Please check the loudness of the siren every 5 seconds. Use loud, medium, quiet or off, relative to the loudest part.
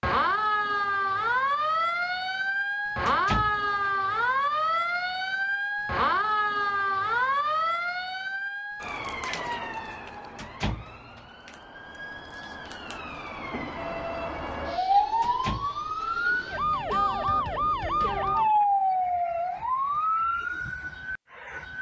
loud, loud, medium, loud, medium.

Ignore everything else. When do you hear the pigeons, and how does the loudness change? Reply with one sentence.
The pigeons can't be heard in this clip.